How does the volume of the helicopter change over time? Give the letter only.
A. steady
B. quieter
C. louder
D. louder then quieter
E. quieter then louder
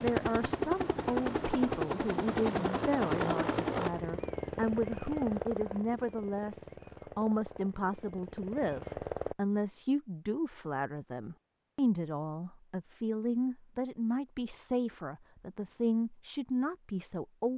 B.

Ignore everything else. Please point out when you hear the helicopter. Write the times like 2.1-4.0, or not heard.
0.0-9.3.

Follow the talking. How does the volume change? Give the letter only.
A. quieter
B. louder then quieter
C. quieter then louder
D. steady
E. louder
D.